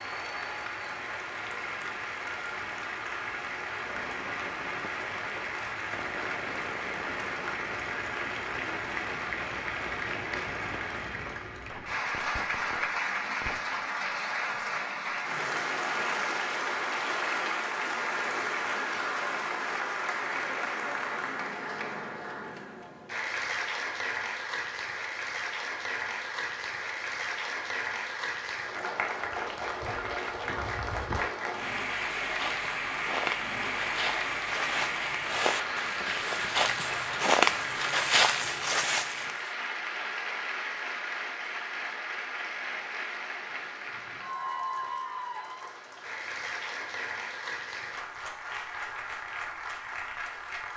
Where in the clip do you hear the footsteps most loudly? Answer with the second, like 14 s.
37 s.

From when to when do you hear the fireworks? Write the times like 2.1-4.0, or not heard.
3.8-13.8.